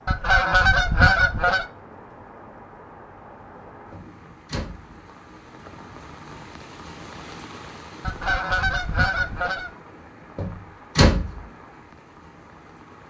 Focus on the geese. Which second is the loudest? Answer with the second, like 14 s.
1 s.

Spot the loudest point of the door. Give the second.
11 s.